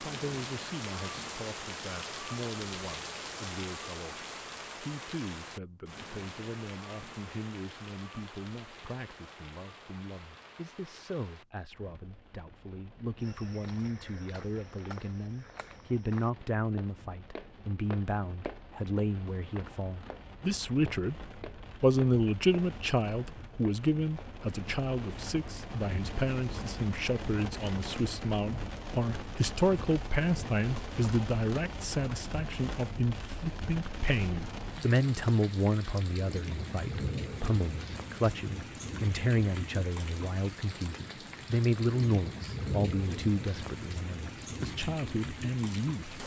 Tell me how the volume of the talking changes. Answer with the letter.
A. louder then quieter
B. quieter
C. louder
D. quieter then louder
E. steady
C.